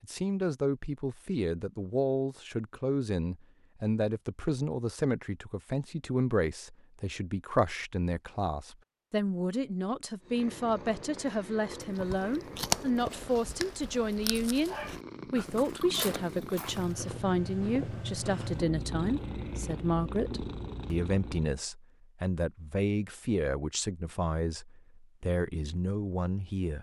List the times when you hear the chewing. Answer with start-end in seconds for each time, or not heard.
11.8-16.9.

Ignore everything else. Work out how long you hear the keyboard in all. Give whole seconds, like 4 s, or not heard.
not heard.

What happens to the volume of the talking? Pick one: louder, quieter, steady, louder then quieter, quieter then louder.
steady.